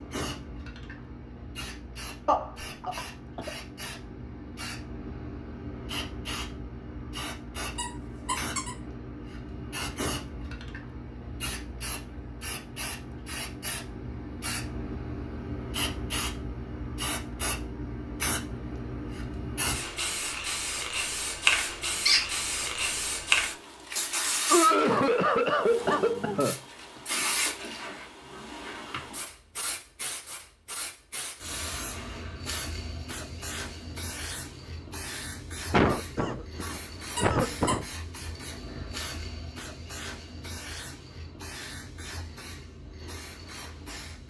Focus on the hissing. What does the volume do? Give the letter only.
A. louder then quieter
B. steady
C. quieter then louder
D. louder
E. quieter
A.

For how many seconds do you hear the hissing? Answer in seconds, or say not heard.
44 s.